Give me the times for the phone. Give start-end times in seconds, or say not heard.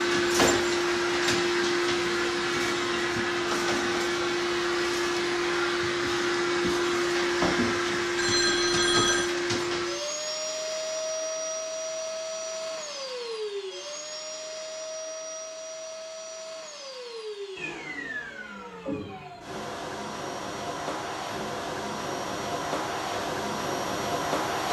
8.2-9.3.